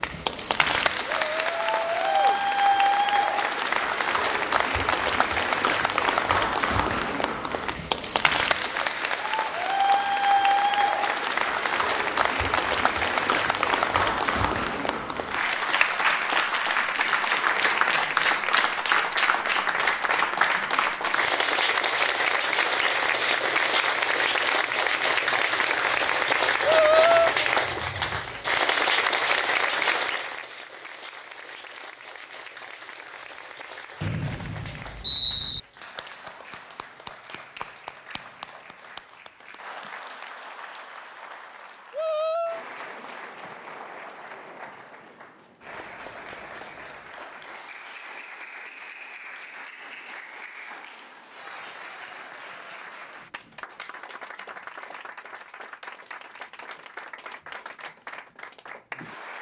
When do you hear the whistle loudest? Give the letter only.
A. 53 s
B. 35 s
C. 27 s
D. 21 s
B.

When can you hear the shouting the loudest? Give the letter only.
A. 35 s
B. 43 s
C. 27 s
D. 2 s
C.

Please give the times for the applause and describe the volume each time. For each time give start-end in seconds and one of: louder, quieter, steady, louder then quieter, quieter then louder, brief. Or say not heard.
0.0-59.3 quieter.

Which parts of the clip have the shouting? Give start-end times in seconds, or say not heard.
1.2-2.4, 26.6-27.4, 41.9-42.6.